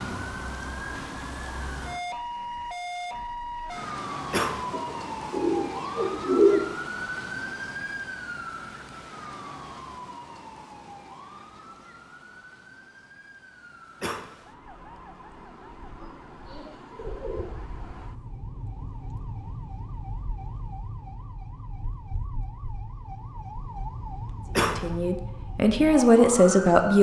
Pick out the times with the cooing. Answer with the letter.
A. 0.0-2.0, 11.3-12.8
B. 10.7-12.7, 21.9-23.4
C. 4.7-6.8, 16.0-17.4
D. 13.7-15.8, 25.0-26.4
C.